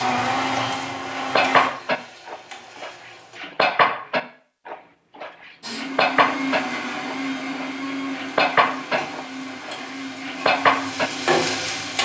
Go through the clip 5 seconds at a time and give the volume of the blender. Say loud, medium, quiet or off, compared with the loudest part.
loud, medium, medium.